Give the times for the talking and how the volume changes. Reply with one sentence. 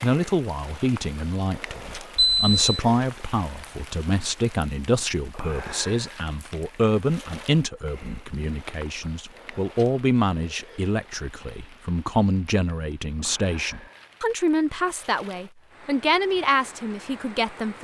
You can hear the talking from 0.0 to 17.7 s, at a steady volume.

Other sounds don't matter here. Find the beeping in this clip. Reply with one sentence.
The beeping can be heard from 2.1 to 2.8 s.